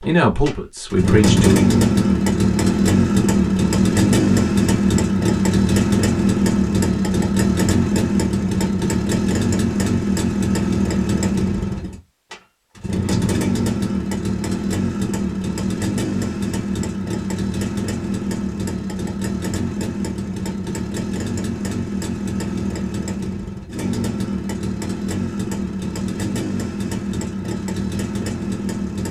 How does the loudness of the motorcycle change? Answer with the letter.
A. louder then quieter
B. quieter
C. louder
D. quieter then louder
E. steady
B.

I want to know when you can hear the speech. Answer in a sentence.
You can hear the speech from 0.0 to 1.6 s.